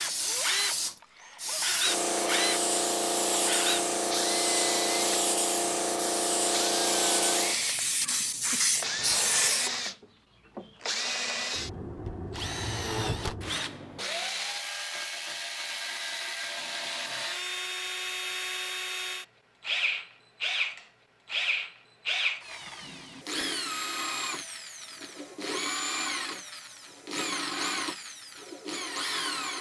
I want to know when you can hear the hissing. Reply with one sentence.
The hissing can be heard from 0.0 to 9.8 s.